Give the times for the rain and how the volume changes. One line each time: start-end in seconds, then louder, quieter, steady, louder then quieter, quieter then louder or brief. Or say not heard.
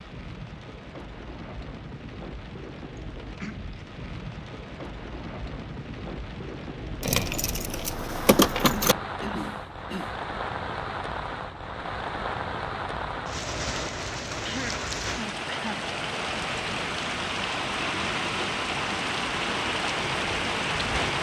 0.0-21.1 louder.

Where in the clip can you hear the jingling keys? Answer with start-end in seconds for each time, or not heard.
7.0-8.9.